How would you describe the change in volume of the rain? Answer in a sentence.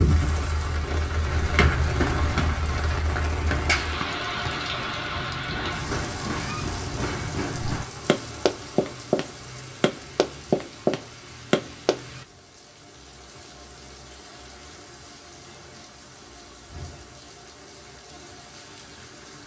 The volume of the rain goes down.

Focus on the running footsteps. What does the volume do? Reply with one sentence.
The volume of the running footsteps goes up.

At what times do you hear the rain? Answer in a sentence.
You can hear the rain from 0.0 to 19.4 s.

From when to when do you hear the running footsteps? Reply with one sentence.
The running footsteps can be heard from 1.2 to 12.0 s.